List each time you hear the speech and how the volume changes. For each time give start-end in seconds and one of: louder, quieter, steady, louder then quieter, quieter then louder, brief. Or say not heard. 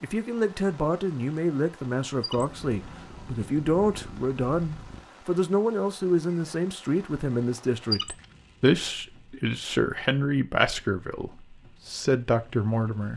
0.0-13.1 steady.